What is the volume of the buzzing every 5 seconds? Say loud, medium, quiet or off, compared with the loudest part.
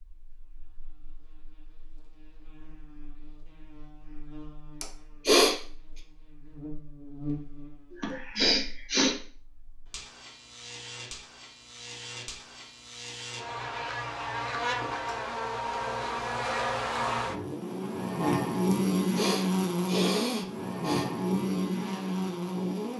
quiet, quiet, medium, loud, loud.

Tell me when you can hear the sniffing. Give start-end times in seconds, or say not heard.
4.8-5.5, 8.0-9.2, 18.7-21.1.